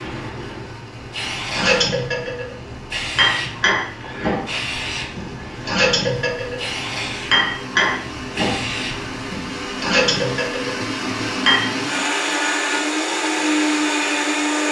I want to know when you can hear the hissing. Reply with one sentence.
The hissing can be heard from 0.0 to 9.2 s.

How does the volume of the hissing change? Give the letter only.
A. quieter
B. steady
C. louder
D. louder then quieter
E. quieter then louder
B.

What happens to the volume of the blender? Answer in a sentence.
The loudness of the blender goes up.